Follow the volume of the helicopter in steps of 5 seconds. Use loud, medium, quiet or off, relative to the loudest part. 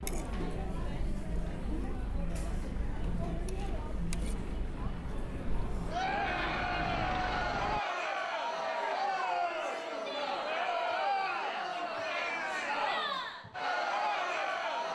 medium, loud, off.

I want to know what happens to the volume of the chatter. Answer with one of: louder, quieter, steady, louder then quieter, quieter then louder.
louder.